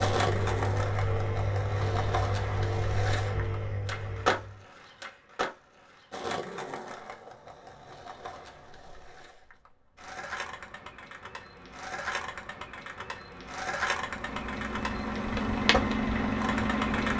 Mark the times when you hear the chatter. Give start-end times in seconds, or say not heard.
not heard.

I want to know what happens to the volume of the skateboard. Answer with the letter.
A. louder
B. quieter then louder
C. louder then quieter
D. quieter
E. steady
B.